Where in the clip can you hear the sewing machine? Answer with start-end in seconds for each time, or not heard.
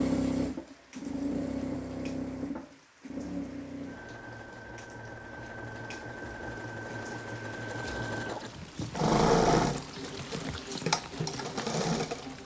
0.0-12.4.